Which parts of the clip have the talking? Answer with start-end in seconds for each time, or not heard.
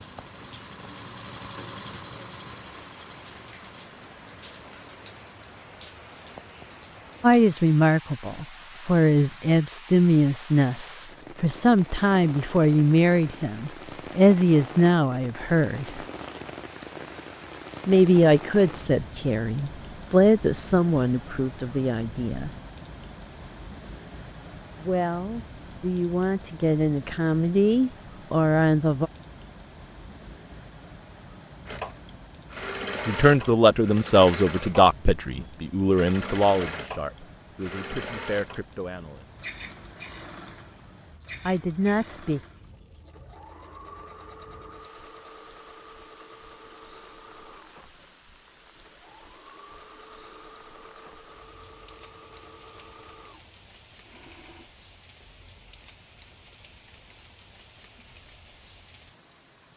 7.2-16.0, 17.9-22.6, 24.8-29.1, 33.0-39.4, 41.5-42.4.